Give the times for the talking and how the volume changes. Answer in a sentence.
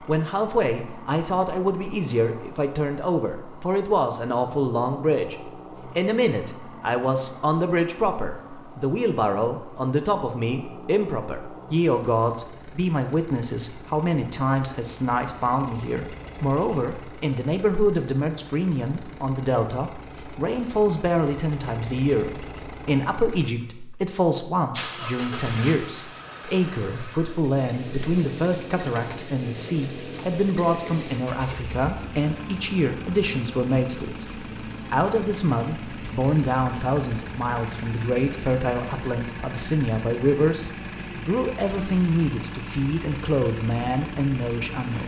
The talking can be heard from 0.1 to 45.0 s, at a steady volume.